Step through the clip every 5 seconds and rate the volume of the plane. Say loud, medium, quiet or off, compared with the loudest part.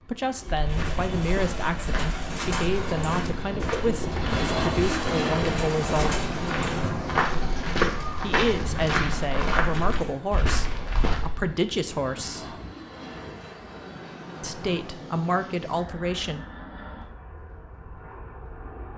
loud, loud, medium, quiet.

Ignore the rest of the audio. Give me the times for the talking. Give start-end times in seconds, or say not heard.
0.1-6.2, 8.2-12.6, 14.4-16.4.